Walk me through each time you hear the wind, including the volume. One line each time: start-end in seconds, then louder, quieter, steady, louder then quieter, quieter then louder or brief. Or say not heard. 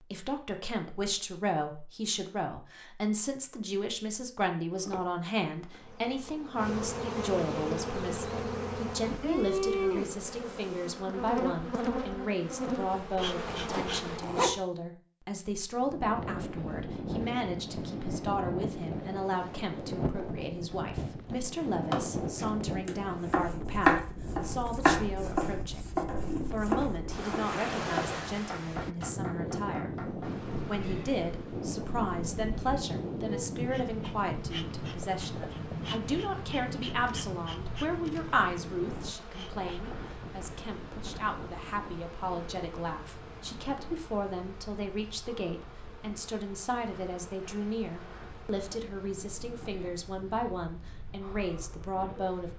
15.7-52.5 quieter.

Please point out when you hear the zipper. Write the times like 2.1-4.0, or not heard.
13.4-14.6.